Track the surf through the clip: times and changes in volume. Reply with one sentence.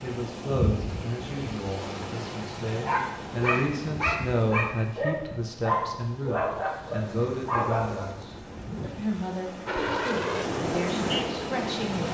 The surf can be heard from 0.0 to 12.0 s, getting quieter then louder.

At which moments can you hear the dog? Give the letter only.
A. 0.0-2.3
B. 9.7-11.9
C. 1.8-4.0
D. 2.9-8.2
D.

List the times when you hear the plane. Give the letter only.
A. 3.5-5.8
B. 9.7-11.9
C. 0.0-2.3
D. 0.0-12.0
B.